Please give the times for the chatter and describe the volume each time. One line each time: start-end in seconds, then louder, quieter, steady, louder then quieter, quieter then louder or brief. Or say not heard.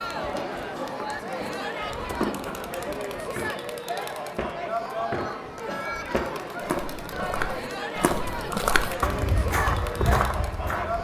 0.0-10.9 steady.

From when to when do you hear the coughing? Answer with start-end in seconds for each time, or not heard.
0.3-0.9, 5.7-6.2.